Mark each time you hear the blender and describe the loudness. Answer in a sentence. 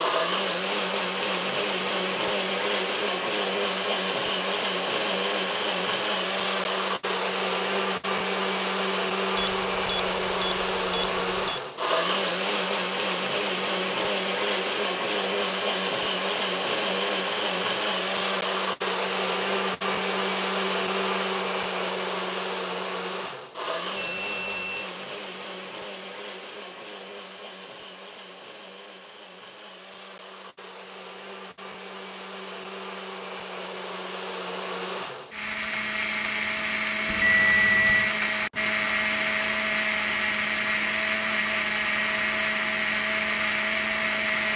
The blender can be heard from 0.0 to 44.5 s, getting quieter then louder.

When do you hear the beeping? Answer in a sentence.
You can hear the beeping from 9.3 to 11.6 s, from 23.9 to 24.8 s and from 37.0 to 38.1 s.